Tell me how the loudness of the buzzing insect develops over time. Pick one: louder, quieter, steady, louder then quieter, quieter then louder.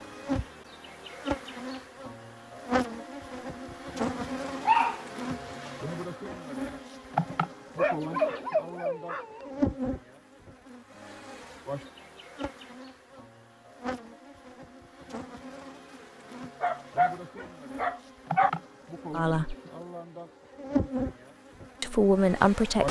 quieter then louder.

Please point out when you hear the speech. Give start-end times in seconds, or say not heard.
19.1-19.6, 21.8-22.8.